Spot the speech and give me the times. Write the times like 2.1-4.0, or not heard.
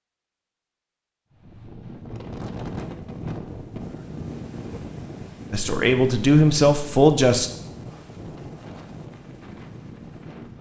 5.5-7.5.